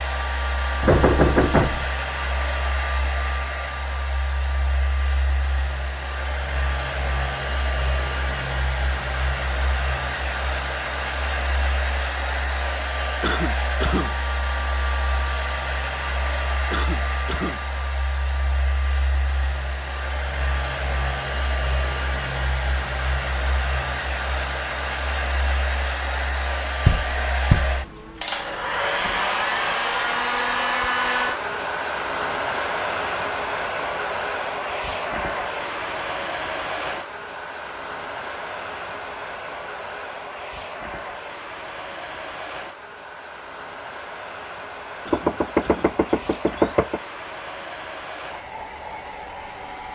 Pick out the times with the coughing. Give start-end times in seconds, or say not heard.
13.2-14.2, 16.7-17.6, 45.0-46.0.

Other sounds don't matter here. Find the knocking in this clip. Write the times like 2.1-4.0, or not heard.
0.8-1.9, 26.9-27.8, 45.1-47.0.